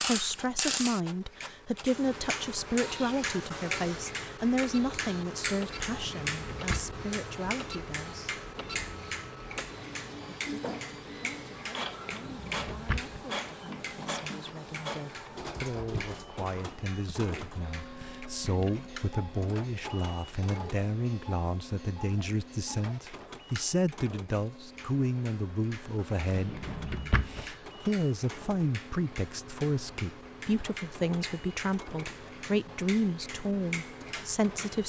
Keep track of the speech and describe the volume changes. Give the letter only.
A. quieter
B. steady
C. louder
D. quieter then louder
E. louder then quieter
D.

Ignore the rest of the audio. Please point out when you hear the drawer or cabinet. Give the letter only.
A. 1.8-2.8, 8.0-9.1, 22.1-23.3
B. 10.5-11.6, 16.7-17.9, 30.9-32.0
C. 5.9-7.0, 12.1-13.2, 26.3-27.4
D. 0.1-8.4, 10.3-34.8
C.